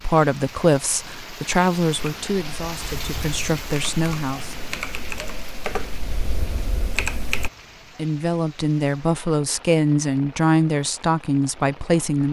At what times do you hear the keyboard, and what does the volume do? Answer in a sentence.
The keyboard can be heard from 1.9 to 7.5 s, getting louder.